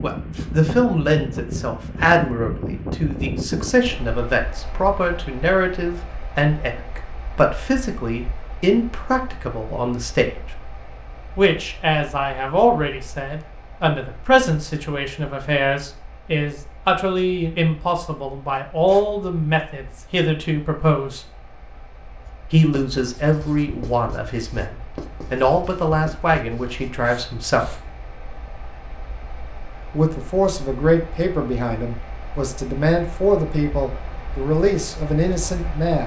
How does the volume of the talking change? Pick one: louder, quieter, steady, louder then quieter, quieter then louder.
steady.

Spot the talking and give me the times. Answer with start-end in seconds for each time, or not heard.
0.0-10.3, 11.3-21.2, 22.5-27.8, 29.9-36.0.